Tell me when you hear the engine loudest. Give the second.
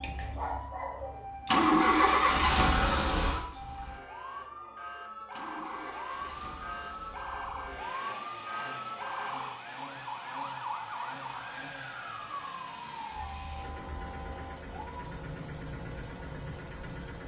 2 s.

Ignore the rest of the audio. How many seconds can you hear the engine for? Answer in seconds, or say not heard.
17 s.